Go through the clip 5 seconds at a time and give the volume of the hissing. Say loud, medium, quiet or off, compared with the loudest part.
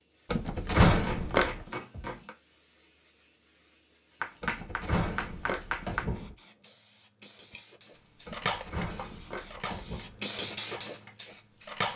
quiet, quiet, loud.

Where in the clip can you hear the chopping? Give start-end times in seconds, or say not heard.
0.9-2.4, 4.2-6.0, 8.4-10.0.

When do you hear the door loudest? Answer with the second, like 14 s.
1 s.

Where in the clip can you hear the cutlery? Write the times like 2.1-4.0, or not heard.
7.5-11.9.